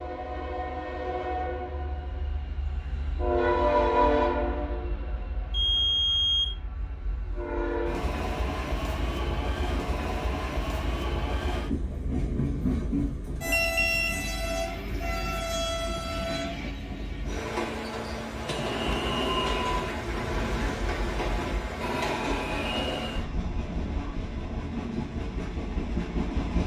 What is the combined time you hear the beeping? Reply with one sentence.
The beeping can be heard for 3 seconds in total.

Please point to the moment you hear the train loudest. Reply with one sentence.
The volume of the train peaks at 4 seconds.